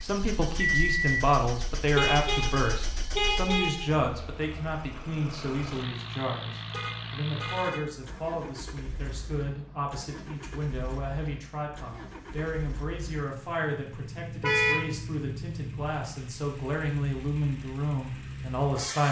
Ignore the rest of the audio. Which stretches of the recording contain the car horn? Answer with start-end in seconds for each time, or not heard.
1.9-3.9, 6.7-7.8, 14.4-14.9.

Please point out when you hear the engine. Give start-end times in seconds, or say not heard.
0.0-19.0.